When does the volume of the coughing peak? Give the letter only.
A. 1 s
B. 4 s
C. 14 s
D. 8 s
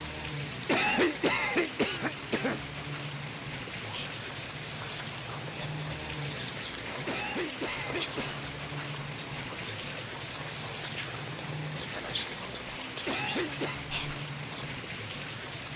A.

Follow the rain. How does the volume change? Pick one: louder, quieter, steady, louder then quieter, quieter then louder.
steady.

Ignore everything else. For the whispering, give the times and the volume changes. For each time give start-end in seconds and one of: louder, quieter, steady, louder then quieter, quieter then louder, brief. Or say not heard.
3.4-14.8 steady.